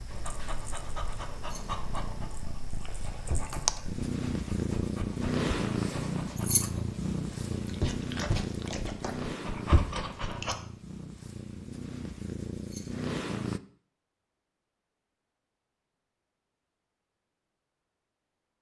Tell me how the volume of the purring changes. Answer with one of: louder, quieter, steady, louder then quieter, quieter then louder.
louder then quieter.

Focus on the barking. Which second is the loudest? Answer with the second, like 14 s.
10 s.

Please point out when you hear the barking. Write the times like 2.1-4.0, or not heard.
0.1-10.6.